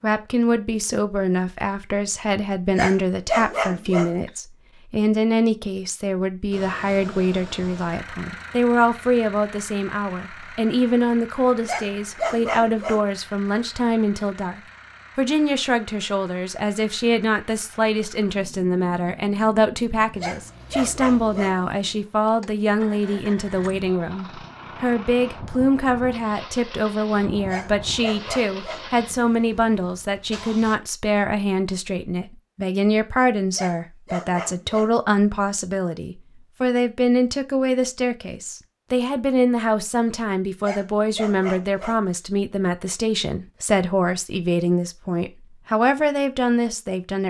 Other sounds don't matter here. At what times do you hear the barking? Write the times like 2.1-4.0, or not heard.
2.7-4.3, 11.7-13.1, 20.1-21.6, 27.4-28.9, 33.5-35.1, 40.6-42.2.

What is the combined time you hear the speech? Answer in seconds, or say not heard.
47 s.